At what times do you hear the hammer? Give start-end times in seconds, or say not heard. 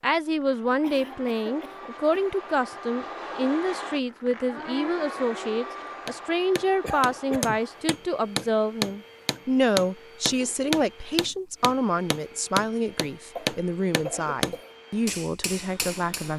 6.0-16.3.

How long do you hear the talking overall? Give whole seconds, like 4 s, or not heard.
16 s.